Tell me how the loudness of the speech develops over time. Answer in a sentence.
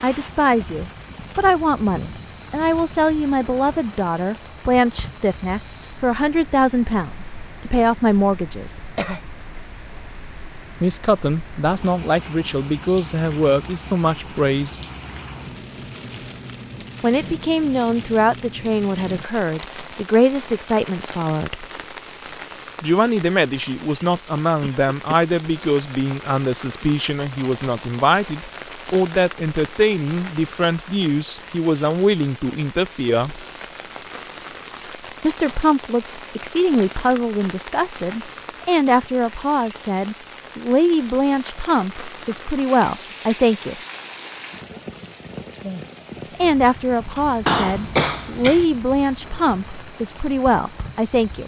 The loudness of the speech stays about the same.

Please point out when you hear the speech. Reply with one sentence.
You can hear the speech from 0.0 to 8.8 s, from 10.8 to 14.8 s, from 17.0 to 21.6 s, from 22.8 to 33.4 s, from 35.2 to 43.8 s and from 46.4 to 51.4 s.